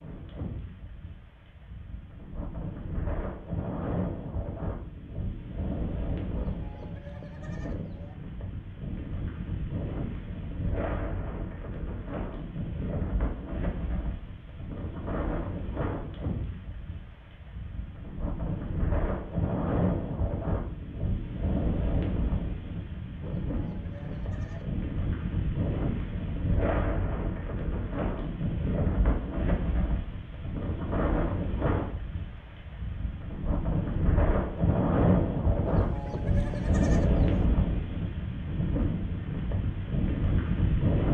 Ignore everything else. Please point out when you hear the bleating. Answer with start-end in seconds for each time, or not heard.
6.3-8.2, 23.2-24.8, 35.6-37.5.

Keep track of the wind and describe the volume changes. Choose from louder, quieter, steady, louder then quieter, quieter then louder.
louder.